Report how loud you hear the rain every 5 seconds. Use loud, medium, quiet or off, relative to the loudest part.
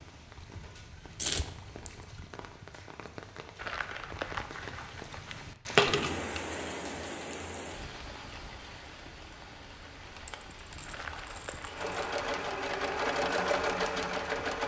medium, loud, medium.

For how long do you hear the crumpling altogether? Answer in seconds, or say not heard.
3 s.